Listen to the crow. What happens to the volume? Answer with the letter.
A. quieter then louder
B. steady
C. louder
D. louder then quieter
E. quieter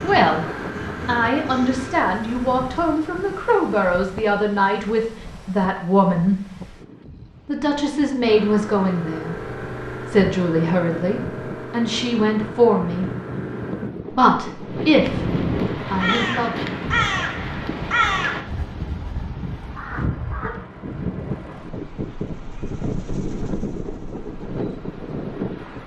E.